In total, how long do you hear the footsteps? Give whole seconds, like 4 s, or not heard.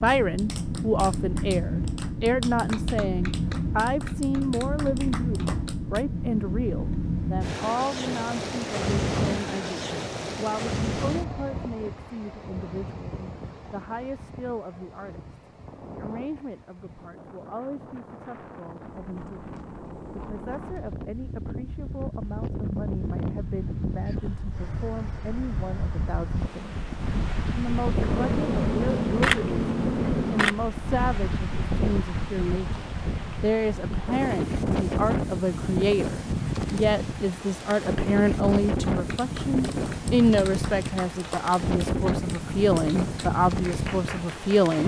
not heard.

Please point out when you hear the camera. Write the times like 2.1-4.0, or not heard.
28.0-30.6.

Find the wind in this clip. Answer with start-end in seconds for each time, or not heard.
0.0-44.8.